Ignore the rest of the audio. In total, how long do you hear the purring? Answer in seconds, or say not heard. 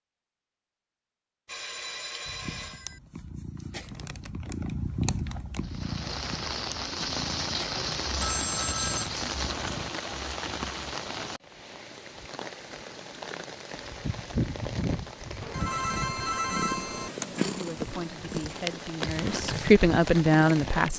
13 s.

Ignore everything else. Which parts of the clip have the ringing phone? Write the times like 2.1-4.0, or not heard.
1.4-3.0, 8.2-9.1, 15.4-17.1.